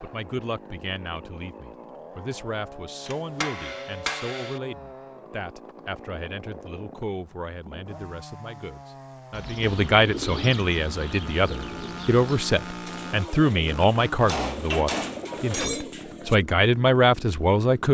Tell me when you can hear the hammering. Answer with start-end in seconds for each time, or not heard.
3.0-4.6, 14.2-15.8.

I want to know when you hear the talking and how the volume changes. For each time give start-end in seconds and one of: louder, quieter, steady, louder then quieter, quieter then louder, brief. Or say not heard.
0.0-17.8 louder.